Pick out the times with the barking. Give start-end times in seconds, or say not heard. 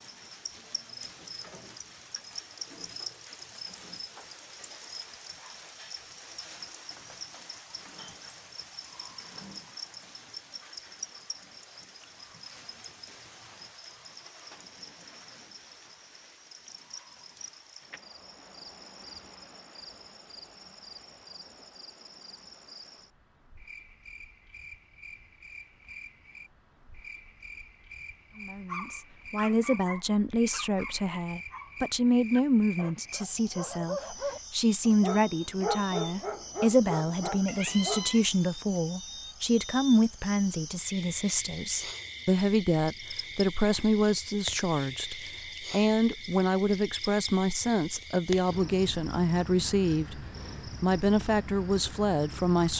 28.6-38.0.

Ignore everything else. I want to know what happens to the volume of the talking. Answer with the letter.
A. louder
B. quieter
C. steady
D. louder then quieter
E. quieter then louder
C.